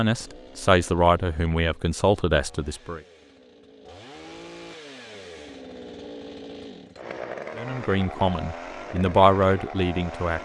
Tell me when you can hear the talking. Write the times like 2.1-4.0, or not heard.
0.0-3.0, 7.5-10.3.